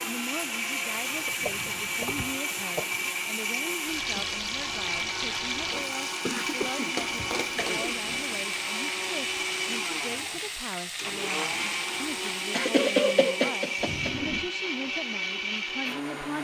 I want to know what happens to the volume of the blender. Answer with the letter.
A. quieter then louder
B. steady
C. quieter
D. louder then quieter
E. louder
B.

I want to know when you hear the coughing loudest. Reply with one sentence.
The loudest moment of the coughing is at 13 seconds.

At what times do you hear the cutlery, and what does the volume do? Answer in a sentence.
You can't hear the cutlery here.